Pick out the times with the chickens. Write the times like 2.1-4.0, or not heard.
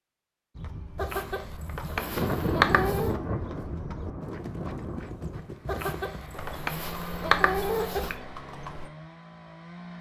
0.9-3.1, 5.7-8.2.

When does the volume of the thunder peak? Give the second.
2 s.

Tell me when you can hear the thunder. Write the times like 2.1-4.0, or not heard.
1.8-5.5.